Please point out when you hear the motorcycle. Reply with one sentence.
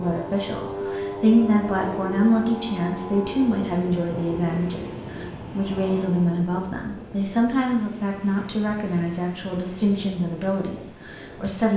The motorcycle can be heard from 0.0 to 6.4 s.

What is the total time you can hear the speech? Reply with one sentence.
The speech can be heard for 12 seconds in total.